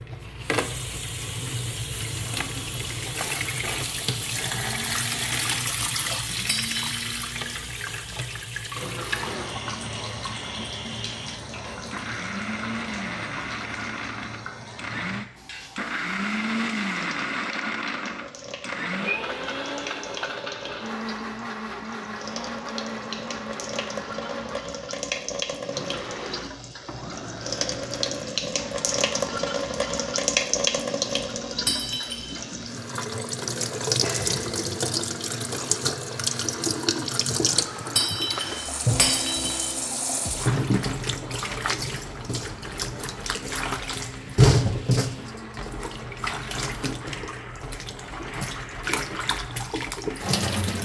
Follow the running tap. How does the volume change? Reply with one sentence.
The loudness of the running tap goes down, then up.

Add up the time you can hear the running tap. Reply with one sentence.
The running tap can be heard for 51 seconds in total.